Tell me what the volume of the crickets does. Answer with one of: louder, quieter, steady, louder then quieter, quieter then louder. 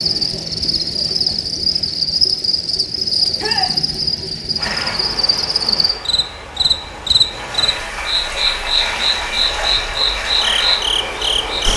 steady.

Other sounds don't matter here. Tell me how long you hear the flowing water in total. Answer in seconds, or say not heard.
7 s.